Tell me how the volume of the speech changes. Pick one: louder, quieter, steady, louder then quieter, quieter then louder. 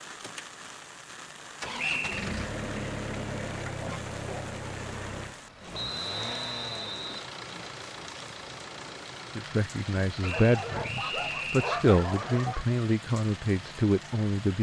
quieter then louder.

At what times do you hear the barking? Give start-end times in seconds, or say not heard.
10.2-12.7.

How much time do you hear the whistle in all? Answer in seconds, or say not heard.
4 s.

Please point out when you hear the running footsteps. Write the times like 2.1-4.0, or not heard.
not heard.